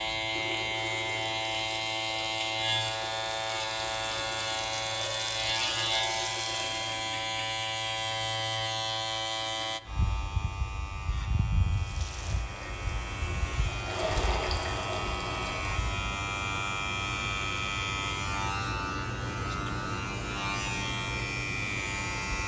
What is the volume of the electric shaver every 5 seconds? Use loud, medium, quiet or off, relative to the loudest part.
loud, loud, medium, loud, loud.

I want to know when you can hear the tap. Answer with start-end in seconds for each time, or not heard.
0.0-7.0, 11.7-15.8.